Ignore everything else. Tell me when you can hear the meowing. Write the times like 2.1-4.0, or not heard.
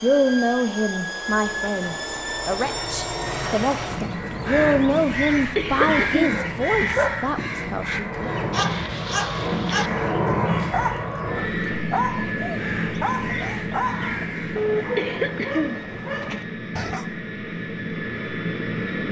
not heard.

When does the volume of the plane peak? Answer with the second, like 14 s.
10 s.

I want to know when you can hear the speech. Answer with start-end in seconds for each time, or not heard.
0.0-8.3.